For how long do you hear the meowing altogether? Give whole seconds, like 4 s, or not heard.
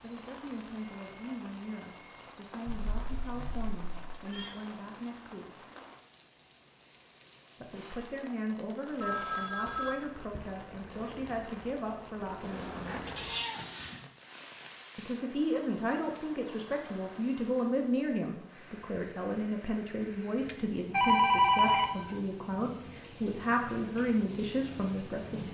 4 s.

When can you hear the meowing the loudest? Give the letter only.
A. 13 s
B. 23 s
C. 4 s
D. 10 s
A.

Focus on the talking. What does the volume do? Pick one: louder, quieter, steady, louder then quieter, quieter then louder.
louder.